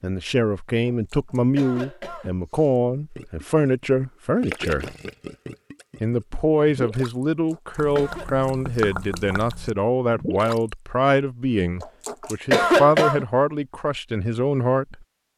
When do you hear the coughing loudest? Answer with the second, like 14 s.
13 s.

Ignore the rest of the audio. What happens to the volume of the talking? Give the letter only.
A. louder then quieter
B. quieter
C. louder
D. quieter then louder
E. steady
E.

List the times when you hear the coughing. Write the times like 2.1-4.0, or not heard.
0.9-2.8, 7.2-8.3, 11.8-13.2.